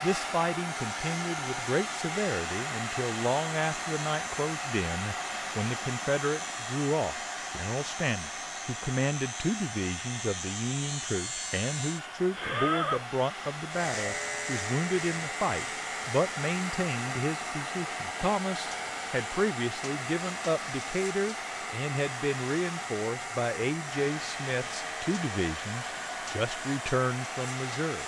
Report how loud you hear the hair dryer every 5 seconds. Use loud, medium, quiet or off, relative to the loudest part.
loud, loud, medium, loud, loud, loud.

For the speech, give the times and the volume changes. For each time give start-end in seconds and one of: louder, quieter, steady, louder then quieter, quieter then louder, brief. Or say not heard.
0.0-28.0 steady.